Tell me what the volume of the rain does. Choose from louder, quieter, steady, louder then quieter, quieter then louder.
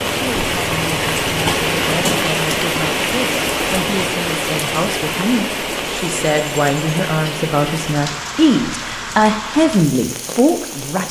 quieter.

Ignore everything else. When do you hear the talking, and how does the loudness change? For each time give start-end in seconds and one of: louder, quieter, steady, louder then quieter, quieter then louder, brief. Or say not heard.
0.1-11.0 louder.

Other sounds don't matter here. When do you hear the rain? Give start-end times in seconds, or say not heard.
0.0-11.0.